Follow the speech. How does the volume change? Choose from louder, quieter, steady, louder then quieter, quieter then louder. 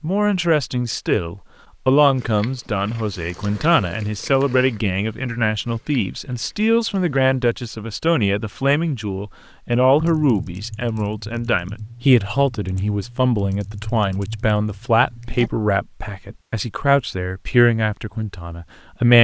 steady.